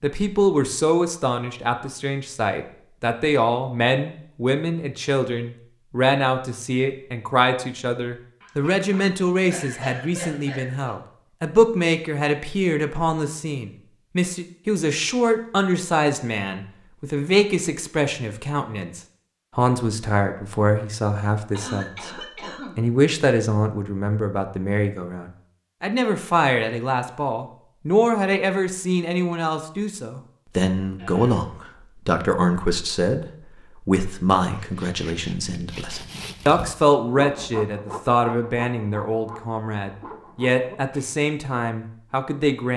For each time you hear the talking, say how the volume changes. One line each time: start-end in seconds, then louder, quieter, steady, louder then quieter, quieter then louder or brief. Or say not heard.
0.0-42.7 steady.